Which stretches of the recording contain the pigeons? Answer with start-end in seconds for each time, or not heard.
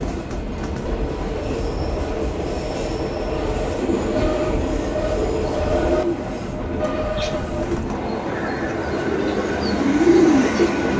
3.8-10.7.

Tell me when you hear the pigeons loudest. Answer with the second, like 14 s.
10 s.